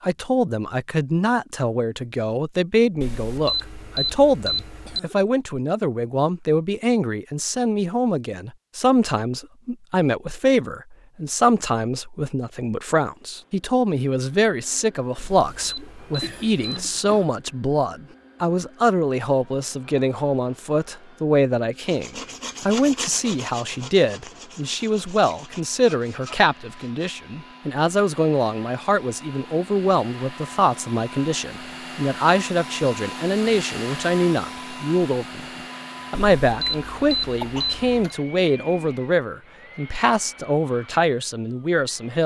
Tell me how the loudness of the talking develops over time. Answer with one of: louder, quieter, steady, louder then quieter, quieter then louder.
steady.